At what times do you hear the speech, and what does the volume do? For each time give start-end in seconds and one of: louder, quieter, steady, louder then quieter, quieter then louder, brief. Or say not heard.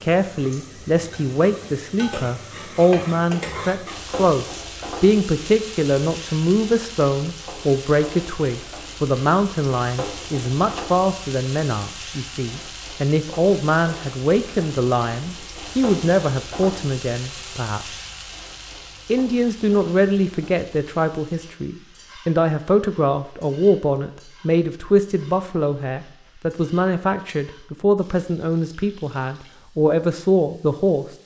0.0-17.9 steady
19.1-31.1 steady.